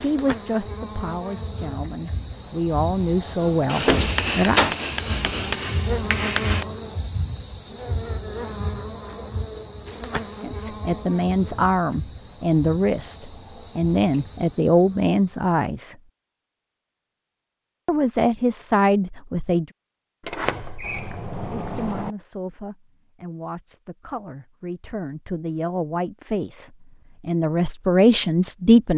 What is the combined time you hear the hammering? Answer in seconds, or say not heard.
3 s.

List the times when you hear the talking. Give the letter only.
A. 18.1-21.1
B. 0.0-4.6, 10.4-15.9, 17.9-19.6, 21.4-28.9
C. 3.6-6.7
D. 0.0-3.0
B.